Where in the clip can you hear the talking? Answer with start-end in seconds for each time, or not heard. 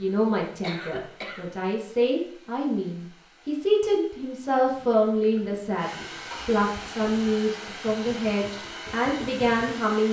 0.0-10.0.